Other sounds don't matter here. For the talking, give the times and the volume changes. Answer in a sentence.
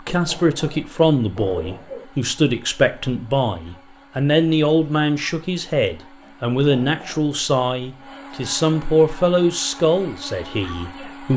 You can hear the talking from 0.1 to 11.3 s, at a steady volume.